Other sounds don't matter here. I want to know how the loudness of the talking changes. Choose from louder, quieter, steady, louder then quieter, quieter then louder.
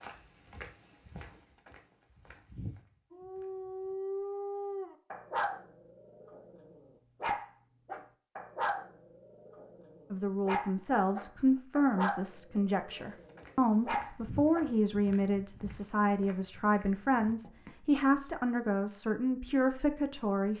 steady.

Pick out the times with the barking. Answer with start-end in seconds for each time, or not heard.
3.1-14.7.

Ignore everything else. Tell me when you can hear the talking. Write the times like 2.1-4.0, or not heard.
10.1-20.5.